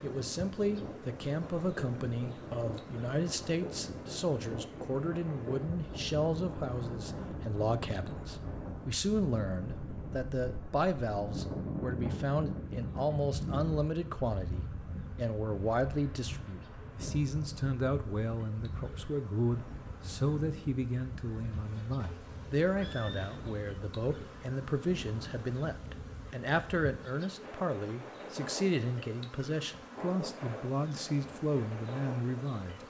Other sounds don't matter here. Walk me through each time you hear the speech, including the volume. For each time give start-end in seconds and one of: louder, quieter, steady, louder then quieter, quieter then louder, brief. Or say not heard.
0.0-32.8 steady.